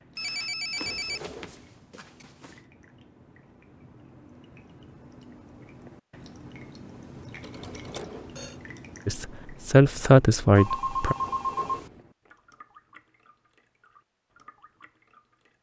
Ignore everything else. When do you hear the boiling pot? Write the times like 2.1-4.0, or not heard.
not heard.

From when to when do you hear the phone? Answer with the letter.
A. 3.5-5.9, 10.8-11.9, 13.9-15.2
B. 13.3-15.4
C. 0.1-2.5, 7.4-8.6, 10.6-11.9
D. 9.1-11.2
C.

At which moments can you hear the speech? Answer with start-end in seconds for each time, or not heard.
9.1-11.2.